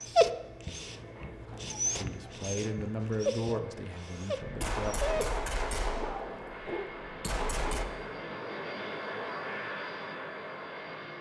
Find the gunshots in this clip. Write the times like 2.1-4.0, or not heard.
4.4-7.8.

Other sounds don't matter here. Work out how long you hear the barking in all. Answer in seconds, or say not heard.
8 s.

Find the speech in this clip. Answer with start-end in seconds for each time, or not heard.
1.9-5.0.